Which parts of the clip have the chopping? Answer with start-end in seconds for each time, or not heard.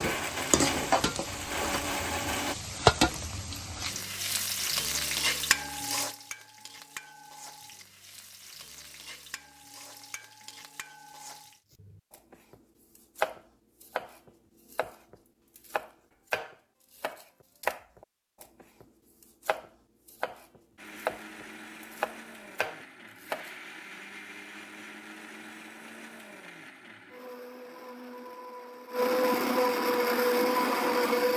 11.8-18.9, 19.4-23.5.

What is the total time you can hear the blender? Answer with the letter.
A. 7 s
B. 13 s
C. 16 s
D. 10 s
B.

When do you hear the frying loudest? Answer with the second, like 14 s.
3 s.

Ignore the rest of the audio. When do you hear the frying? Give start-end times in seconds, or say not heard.
0.0-11.6.